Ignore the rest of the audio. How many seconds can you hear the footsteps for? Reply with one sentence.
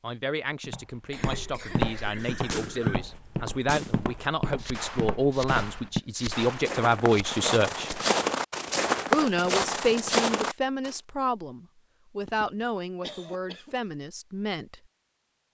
You can hear the footsteps for 10 seconds altogether.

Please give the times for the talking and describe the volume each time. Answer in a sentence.
You can hear the talking from 0.0 to 7.9 s, getting louder; and from 9.1 to 14.8 s, getting quieter.